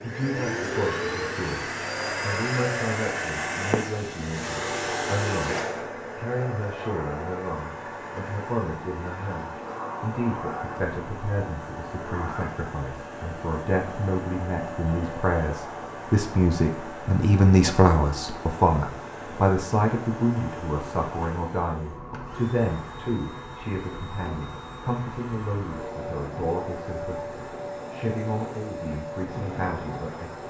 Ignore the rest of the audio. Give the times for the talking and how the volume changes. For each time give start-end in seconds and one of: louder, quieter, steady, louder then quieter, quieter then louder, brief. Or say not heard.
0.0-30.4 louder then quieter.